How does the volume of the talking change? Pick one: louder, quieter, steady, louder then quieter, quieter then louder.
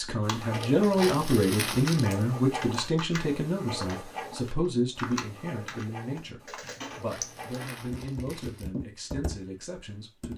quieter.